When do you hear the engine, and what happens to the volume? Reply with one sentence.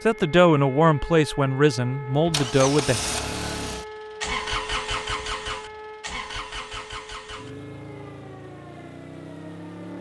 You can hear the engine from 2.1 to 9.9 s, getting quieter.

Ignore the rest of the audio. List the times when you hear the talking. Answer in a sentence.
You can hear the talking from 0.1 to 3.0 s.